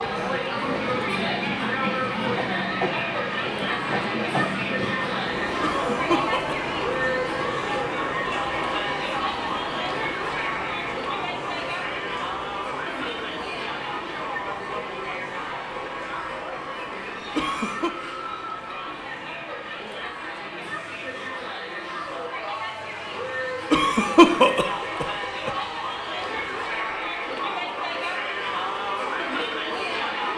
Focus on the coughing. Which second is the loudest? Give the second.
24 s.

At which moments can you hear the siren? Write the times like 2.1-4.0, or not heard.
not heard.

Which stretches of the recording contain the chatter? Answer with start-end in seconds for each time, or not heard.
0.0-30.3.